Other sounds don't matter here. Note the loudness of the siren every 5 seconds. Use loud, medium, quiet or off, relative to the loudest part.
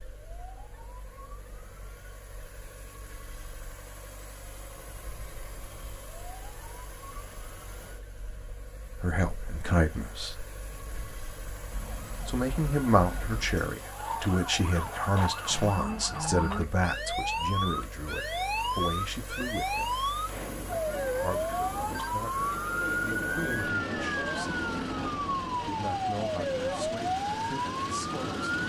quiet, quiet, medium, loud, loud, loud.